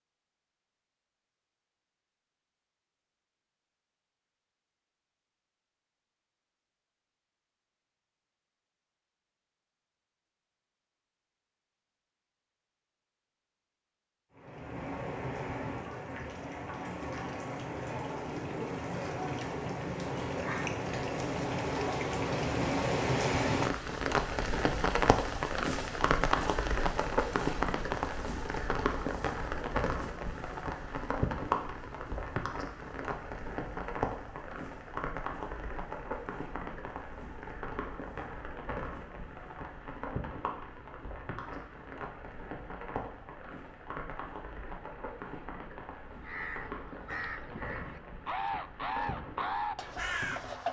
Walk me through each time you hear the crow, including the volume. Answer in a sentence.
You can hear the crow from 46.1 to 50.6 s, getting louder.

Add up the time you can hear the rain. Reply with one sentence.
The rain can be heard for 36 seconds in total.